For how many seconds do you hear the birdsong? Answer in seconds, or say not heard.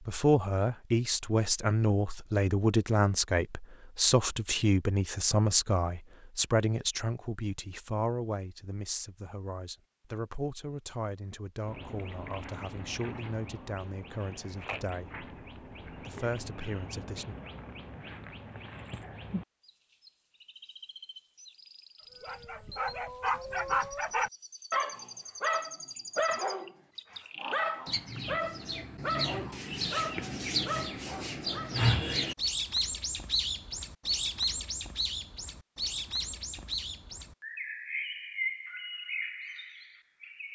29 s.